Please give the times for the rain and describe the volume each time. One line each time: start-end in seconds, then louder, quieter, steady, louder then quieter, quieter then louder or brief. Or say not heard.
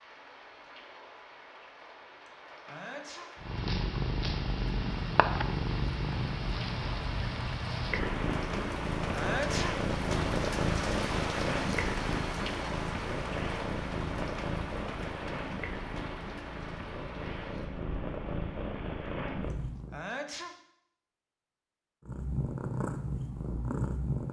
0.0-19.7 louder then quieter.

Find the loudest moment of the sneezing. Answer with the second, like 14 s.
9 s.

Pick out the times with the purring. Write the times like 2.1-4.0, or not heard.
3.4-20.0, 22.1-24.2.